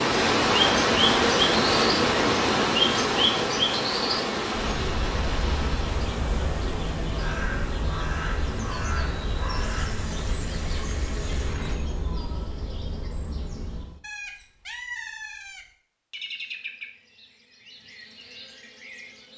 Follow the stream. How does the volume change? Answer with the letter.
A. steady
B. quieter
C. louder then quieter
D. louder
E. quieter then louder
B.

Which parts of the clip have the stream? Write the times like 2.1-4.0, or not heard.
0.0-11.8.